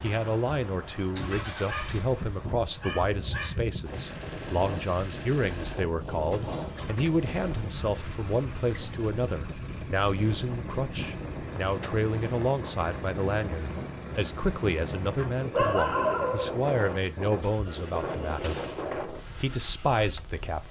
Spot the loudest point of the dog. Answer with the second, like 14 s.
16 s.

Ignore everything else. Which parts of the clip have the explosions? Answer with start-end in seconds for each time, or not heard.
18.4-18.9.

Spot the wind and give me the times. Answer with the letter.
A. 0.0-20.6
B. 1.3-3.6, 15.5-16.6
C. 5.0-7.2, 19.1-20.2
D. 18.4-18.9
A.